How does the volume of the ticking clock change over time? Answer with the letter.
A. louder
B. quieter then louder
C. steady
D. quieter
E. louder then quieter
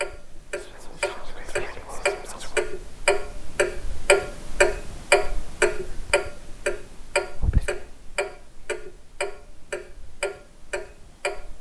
E.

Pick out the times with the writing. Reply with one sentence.
The writing can't be heard in this clip.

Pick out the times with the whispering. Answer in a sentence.
You can hear the whispering from 0.6 to 2.6 s and from 7.3 to 7.8 s.